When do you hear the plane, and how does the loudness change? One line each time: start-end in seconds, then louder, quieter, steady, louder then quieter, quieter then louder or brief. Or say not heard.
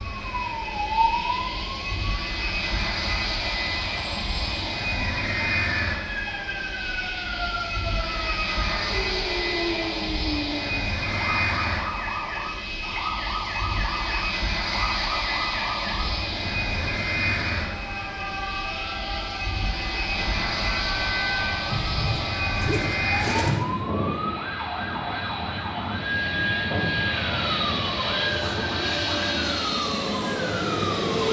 0.0-31.2 steady.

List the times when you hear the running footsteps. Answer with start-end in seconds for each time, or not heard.
not heard.